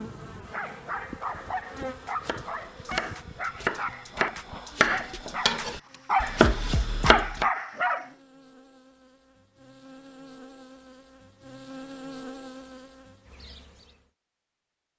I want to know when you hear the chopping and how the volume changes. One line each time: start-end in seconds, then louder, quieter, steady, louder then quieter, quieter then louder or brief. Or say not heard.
1.2-7.5 louder.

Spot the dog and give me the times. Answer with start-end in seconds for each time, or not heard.
0.5-8.1.